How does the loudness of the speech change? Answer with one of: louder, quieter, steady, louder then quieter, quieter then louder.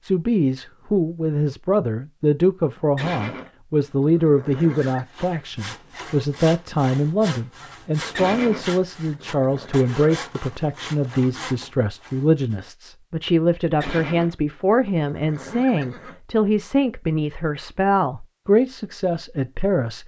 steady.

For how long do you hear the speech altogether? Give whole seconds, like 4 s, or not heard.
20 s.